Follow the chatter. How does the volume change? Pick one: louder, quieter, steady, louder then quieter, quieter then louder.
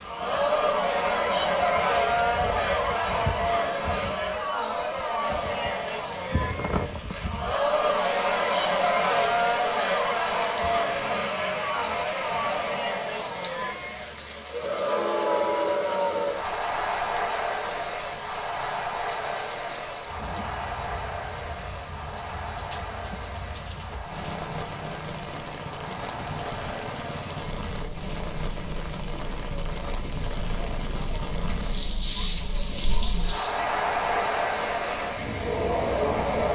quieter then louder.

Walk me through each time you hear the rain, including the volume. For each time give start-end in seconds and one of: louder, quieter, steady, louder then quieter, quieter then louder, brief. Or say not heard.
0.0-36.5 steady.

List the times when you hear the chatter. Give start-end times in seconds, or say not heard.
0.0-36.5.